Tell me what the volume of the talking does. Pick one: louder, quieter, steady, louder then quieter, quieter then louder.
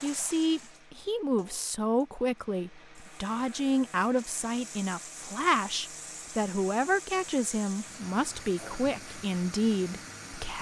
steady.